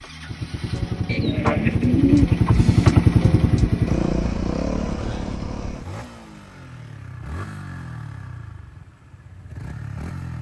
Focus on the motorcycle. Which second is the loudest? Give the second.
3 s.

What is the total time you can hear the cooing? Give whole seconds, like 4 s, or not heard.
2 s.